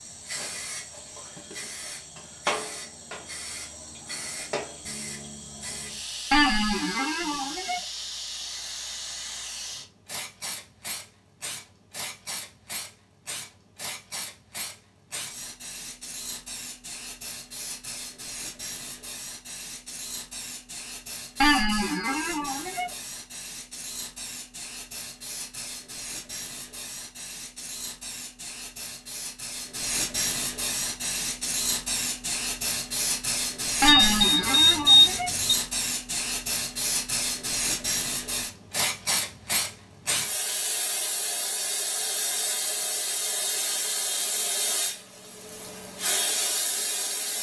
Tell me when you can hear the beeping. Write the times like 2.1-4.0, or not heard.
33.9-35.5.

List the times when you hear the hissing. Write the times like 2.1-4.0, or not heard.
0.0-47.3.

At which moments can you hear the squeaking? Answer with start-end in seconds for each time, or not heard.
6.3-7.8, 21.4-22.9, 33.8-35.3.